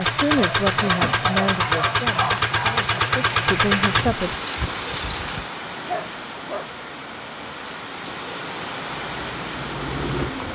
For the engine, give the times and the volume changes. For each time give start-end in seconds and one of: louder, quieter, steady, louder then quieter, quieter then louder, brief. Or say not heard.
0.0-5.5 quieter
8.8-10.5 brief.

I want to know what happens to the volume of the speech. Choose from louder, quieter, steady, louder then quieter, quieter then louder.
quieter then louder.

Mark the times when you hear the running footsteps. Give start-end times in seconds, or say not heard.
not heard.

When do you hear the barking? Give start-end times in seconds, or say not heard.
0.3-2.8, 5.8-6.7.